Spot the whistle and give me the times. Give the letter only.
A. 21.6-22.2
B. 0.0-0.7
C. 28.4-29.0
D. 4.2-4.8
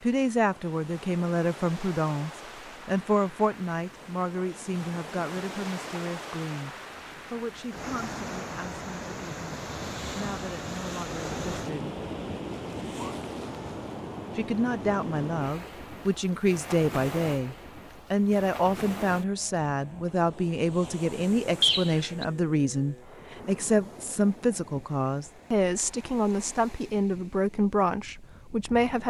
A.